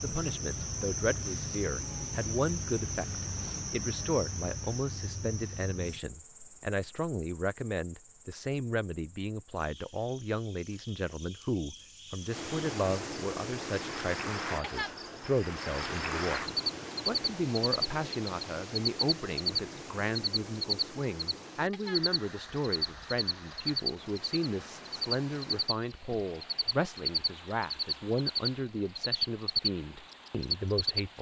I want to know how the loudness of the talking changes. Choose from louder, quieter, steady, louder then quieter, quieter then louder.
steady.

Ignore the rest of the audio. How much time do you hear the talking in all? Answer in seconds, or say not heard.
31 s.